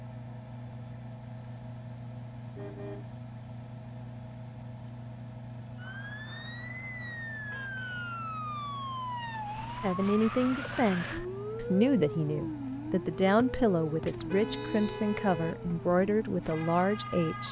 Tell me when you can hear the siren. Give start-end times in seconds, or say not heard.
5.8-17.4.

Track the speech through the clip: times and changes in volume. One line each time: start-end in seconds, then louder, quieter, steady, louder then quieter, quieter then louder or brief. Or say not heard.
9.8-17.4 steady.